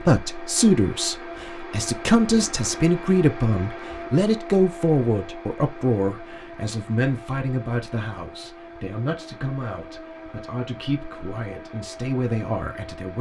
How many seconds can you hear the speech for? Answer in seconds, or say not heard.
13 s.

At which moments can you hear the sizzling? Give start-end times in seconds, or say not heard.
not heard.